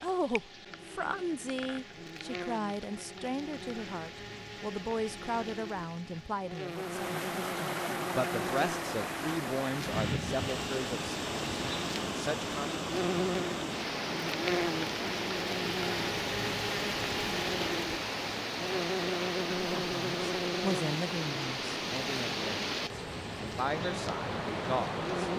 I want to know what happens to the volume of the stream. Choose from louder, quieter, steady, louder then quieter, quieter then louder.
steady.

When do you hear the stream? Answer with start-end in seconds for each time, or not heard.
6.7-25.3.